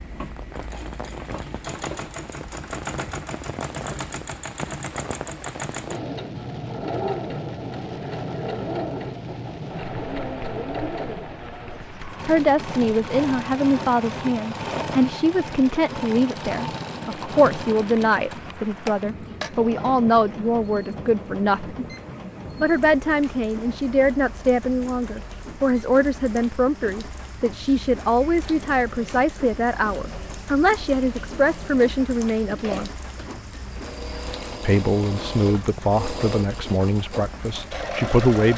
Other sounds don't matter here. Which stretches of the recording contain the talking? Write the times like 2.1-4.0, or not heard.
12.2-21.8, 22.6-32.9, 34.6-38.5.